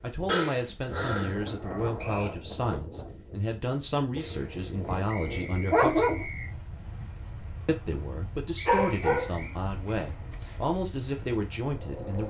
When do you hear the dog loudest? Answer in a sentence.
The volume of the dog peaks at 6 seconds.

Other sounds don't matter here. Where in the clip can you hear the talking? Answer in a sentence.
The talking can be heard from 0.0 to 6.2 s and from 7.7 to 12.2 s.